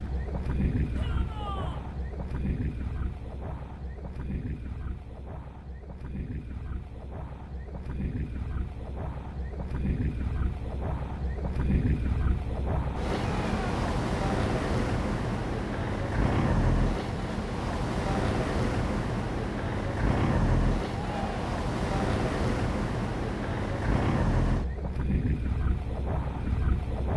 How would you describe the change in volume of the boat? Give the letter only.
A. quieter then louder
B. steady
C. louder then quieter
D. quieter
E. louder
E.